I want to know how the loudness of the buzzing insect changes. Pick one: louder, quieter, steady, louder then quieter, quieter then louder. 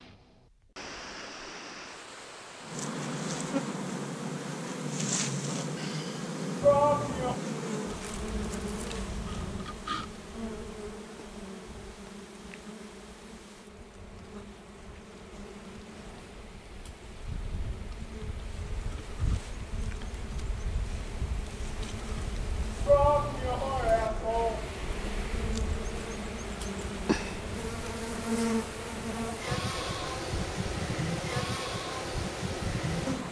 quieter then louder.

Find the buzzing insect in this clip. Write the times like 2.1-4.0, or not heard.
2.6-33.2.